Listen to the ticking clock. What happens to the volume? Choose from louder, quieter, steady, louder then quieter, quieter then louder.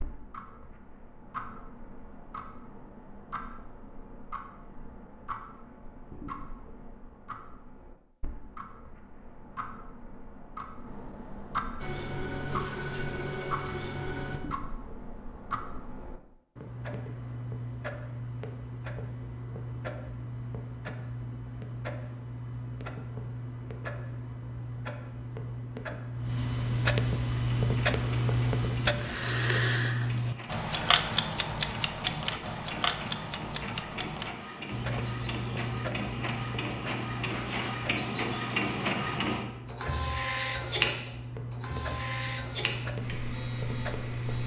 louder then quieter.